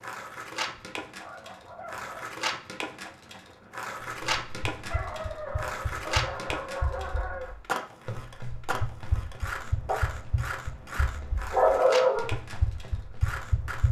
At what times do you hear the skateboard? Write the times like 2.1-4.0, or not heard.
0.0-13.8.